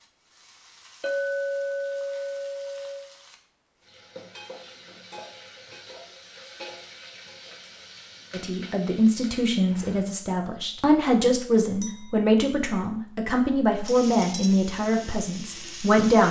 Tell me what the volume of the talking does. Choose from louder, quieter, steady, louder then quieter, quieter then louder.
steady.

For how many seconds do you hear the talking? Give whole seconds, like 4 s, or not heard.
8 s.